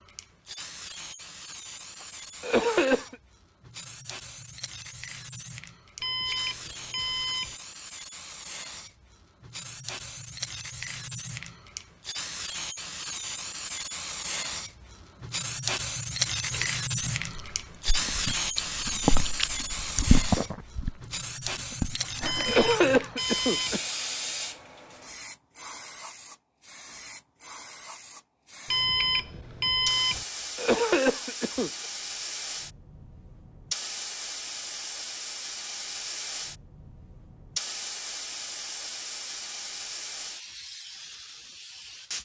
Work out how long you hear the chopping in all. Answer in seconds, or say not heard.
not heard.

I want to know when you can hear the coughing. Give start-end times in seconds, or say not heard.
2.4-3.1, 22.4-23.8, 30.6-31.7.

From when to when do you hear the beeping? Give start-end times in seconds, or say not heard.
6.0-7.5, 22.2-23.8, 28.6-30.2.